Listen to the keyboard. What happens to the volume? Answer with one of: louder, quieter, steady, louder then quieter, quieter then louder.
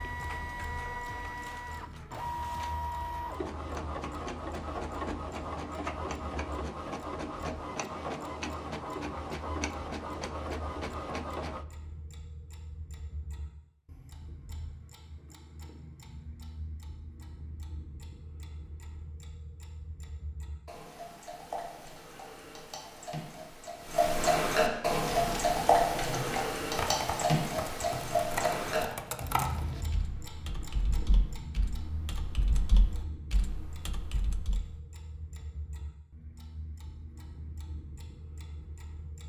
quieter.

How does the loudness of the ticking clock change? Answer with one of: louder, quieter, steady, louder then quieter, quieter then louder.
louder then quieter.